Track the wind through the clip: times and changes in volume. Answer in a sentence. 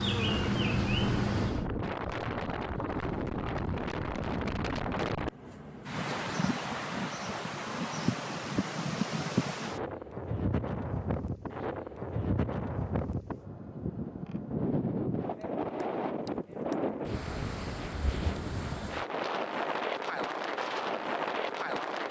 The wind can be heard from 0.2 to 22.0 s, at a steady volume.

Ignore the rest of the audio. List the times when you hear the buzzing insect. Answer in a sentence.
The buzzing insect can be heard from 0.0 to 1.6 s.